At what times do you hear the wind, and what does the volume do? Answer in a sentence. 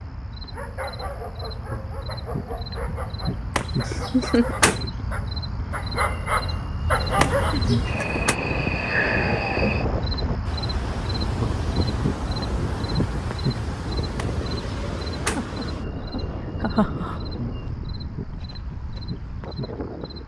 You can hear the wind from 6.8 to 20.2 s, getting quieter.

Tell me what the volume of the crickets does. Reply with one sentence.
The loudness of the crickets goes up, then down.